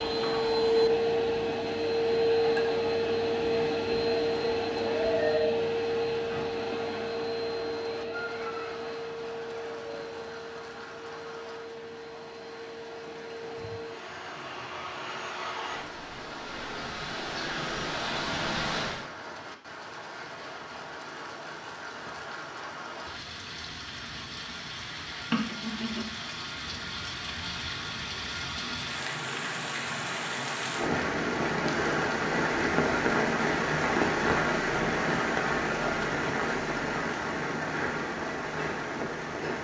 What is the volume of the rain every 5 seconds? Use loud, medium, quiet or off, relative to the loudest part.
quiet, quiet, quiet, quiet, quiet, medium, loud, loud.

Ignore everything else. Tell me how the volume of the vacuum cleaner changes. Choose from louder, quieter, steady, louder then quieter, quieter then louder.
quieter then louder.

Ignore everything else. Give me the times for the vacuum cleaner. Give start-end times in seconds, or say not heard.
0.0-19.1.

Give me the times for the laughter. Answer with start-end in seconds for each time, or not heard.
25.2-26.2.